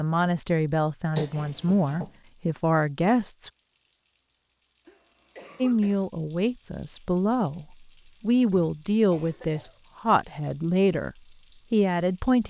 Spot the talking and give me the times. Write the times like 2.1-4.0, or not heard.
0.0-3.5, 5.6-12.4.